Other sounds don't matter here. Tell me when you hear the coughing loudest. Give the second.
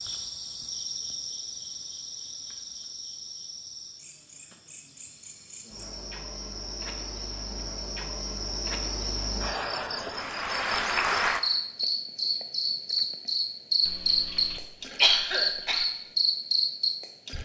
15 s.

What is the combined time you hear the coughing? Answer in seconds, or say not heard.
2 s.